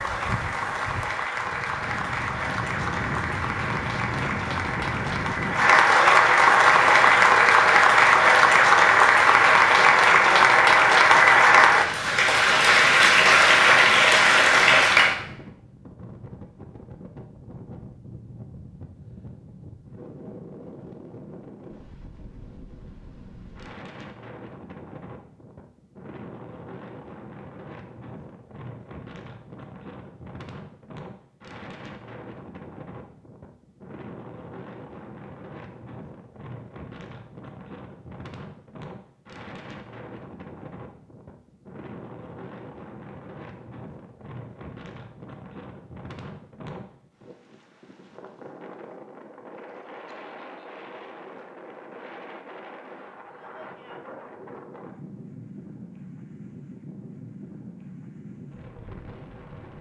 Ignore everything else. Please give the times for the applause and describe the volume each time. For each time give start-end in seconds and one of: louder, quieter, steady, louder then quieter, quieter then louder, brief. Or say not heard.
0.0-15.2 louder.